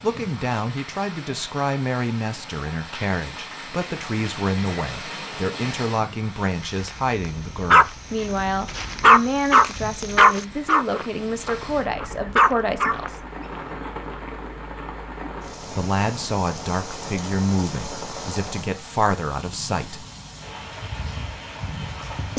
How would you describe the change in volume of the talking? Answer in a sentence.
The volume of the talking stays about the same.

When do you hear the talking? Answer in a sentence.
The talking can be heard from 0.0 to 13.2 s and from 15.7 to 20.1 s.